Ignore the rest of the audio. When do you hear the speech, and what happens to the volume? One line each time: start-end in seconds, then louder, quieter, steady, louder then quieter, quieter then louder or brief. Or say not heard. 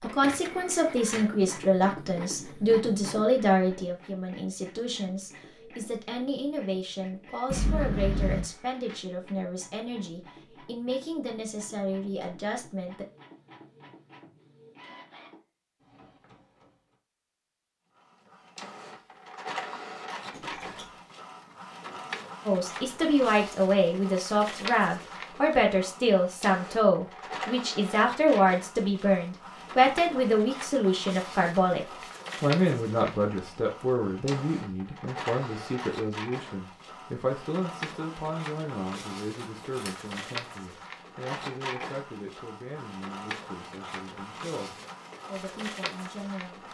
0.0-13.1 quieter
22.4-46.6 quieter.